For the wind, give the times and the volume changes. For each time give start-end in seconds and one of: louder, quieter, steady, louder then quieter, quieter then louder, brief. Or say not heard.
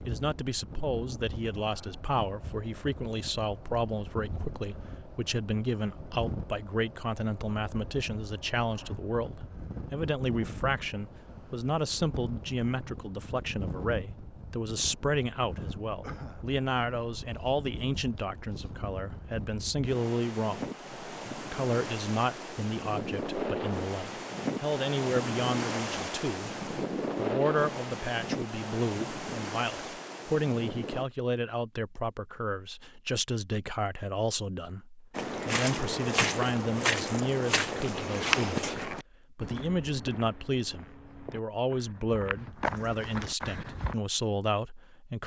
0.0-31.1 louder.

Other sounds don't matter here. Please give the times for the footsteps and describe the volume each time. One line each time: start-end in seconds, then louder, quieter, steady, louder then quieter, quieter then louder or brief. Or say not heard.
35.1-44.0 quieter then louder.